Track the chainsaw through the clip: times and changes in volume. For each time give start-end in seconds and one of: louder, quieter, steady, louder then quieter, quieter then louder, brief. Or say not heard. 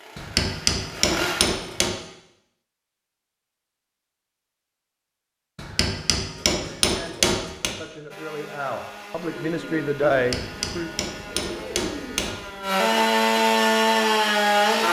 0.0-1.9 brief
8.1-14.8 louder.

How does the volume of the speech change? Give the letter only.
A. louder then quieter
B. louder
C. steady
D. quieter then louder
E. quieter
B.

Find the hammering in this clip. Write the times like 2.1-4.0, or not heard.
0.1-1.9, 5.5-7.8, 10.1-12.3.